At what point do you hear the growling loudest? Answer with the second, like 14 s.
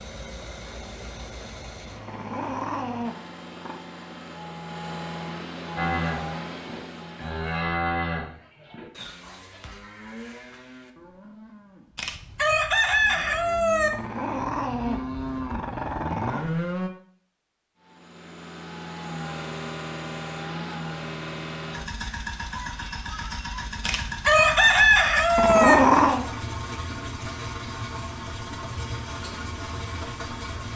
26 s.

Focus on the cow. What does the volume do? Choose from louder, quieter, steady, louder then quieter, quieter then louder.
quieter then louder.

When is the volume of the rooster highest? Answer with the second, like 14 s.
25 s.